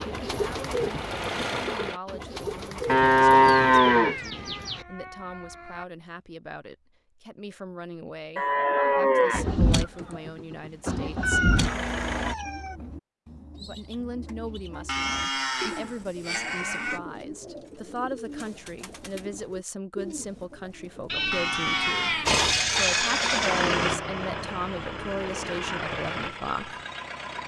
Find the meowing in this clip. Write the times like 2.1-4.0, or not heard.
3.9-5.8, 11.2-12.8, 21.1-22.7.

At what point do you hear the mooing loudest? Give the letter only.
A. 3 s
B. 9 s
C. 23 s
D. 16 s
A.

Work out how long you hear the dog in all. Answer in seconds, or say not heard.
not heard.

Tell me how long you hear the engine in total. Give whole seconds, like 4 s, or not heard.
10 s.